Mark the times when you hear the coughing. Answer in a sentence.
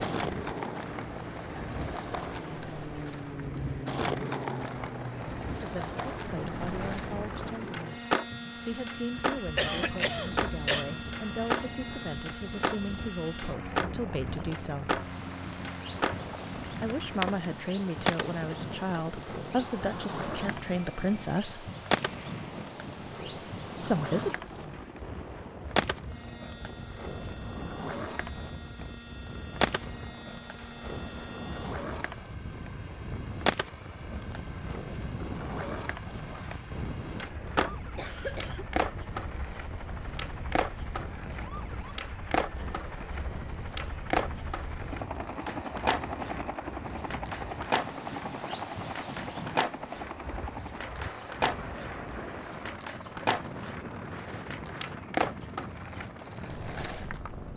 You can hear the coughing from 9.6 to 10.8 s and from 37.7 to 38.6 s.